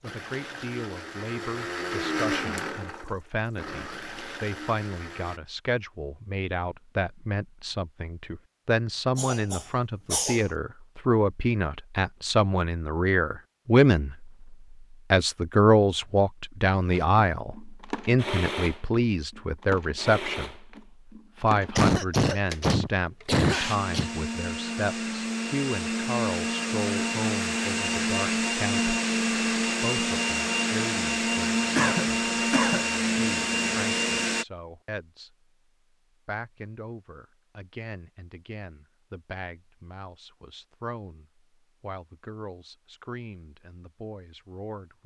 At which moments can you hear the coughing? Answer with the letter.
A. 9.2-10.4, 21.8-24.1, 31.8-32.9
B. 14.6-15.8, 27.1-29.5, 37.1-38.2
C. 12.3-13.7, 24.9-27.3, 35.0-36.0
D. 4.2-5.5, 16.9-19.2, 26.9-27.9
A.